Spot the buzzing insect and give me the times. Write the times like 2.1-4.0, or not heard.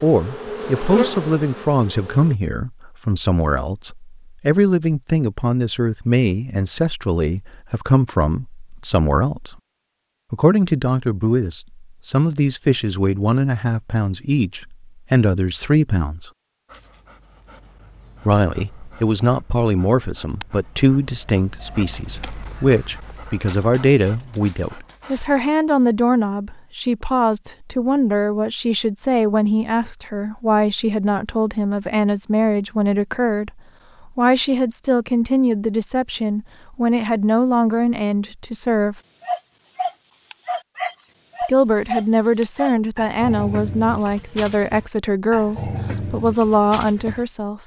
0.0-2.4.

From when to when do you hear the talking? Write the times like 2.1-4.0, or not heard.
0.0-9.6, 10.3-16.3, 18.2-39.0, 41.5-47.6.